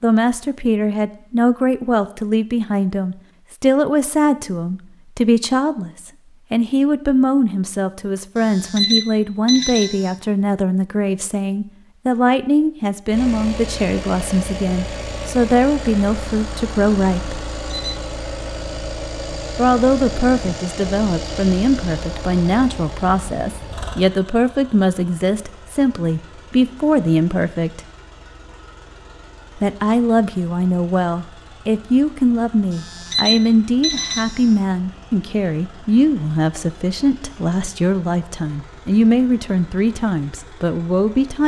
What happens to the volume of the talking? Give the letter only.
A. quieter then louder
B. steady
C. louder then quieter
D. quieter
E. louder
B.